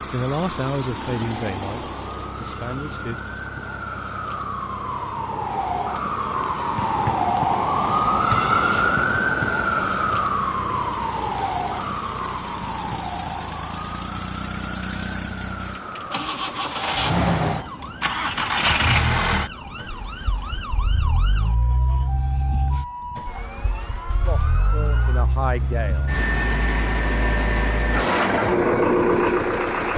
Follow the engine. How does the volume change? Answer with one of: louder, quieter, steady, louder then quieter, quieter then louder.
louder.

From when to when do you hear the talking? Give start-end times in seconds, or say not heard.
0.1-3.2, 24.1-26.1.